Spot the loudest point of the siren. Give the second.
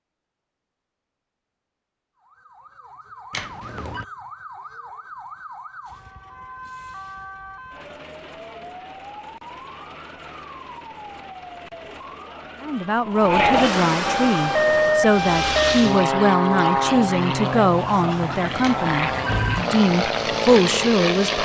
15 s.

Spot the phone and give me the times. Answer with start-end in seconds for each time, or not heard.
3.3-4.0, 18.6-19.6.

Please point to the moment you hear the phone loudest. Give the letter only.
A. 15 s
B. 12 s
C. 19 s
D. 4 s
C.